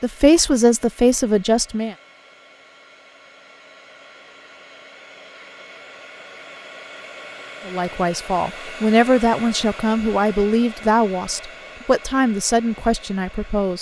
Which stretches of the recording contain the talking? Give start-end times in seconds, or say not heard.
0.0-1.9, 7.7-13.7.